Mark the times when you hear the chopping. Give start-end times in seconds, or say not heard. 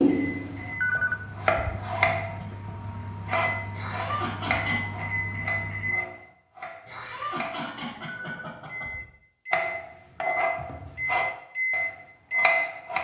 0.0-7.7, 9.5-12.9.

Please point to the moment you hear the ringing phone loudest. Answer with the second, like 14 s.
1 s.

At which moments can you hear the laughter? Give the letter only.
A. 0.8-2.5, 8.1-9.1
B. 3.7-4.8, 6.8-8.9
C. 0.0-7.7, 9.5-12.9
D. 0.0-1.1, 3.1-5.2
B.